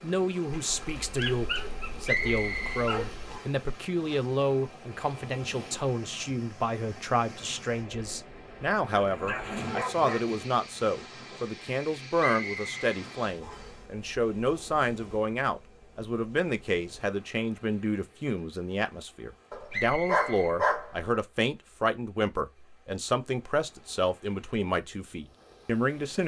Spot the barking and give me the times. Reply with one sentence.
The barking can be heard from 0.9 to 3.2 s, from 8.9 to 10.5 s and from 19.5 to 21.1 s.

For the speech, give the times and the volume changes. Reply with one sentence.
You can hear the speech from 0.0 to 26.2 s, at a steady volume.